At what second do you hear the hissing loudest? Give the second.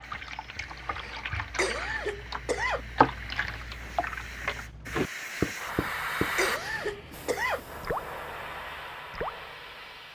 6 s.